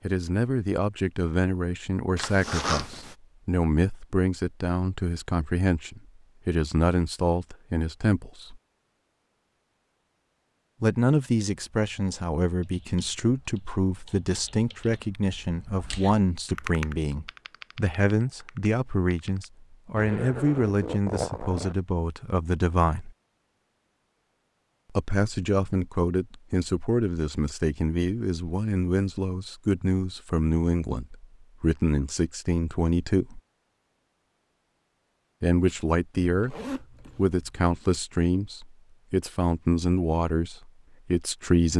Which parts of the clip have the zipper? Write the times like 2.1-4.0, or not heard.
2.1-3.1, 19.9-21.8, 36.2-37.5.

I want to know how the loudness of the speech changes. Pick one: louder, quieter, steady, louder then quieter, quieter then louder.
steady.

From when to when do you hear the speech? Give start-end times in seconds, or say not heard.
0.0-8.6, 10.8-23.1, 24.9-33.4, 35.4-41.7.